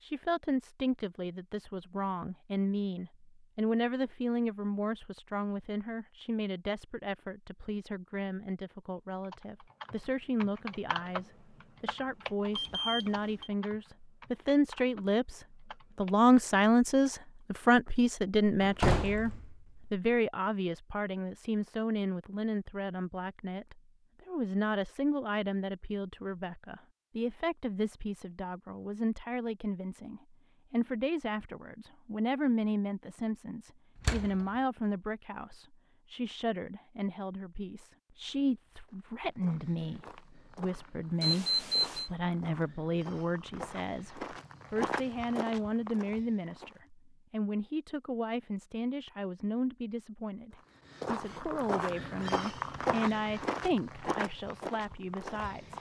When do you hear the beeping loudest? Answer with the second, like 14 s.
42 s.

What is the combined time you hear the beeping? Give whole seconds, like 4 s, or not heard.
2 s.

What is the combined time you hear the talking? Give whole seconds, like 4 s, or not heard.
56 s.